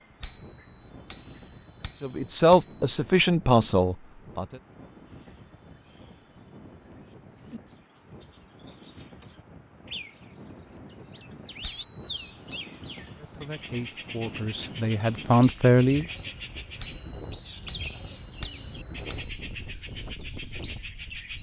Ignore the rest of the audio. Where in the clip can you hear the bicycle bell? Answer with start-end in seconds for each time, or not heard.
0.2-2.9, 11.6-12.6, 16.8-19.4.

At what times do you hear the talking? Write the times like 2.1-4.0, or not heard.
2.0-4.5, 13.2-16.2.